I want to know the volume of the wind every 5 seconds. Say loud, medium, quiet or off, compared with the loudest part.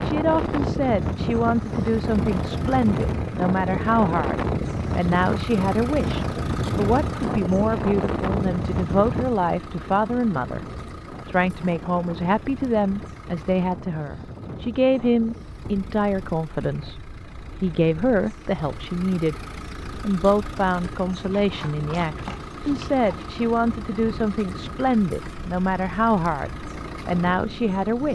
loud, loud, quiet, quiet, quiet, quiet.